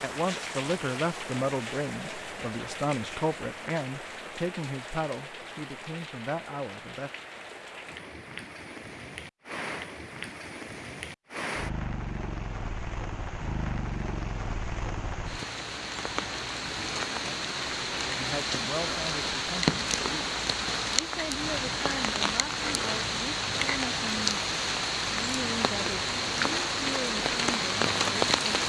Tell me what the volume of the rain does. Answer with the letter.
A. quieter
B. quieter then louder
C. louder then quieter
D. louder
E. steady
D.